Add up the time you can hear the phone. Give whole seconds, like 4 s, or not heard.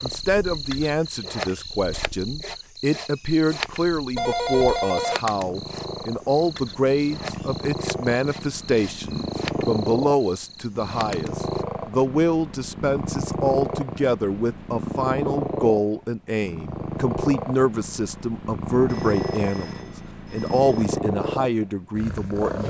3 s.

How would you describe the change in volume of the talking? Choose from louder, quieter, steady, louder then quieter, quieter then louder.
steady.